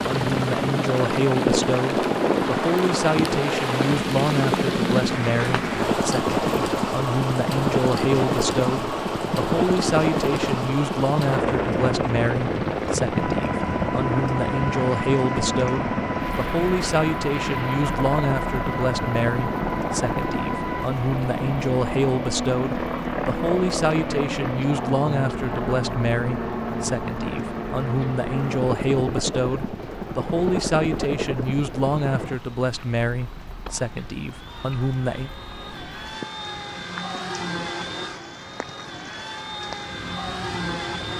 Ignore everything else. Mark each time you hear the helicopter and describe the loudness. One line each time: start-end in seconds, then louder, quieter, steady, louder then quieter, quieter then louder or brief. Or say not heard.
0.0-41.1 quieter.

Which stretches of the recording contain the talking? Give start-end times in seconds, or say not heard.
0.0-35.3.